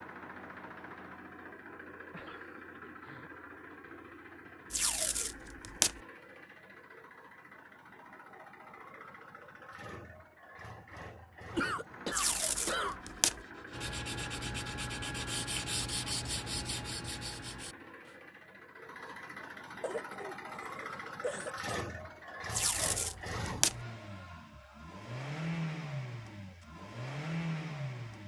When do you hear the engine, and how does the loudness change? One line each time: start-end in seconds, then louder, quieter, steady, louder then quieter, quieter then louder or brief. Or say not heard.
0.0-28.2 louder.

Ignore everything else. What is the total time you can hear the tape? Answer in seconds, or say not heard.
4 s.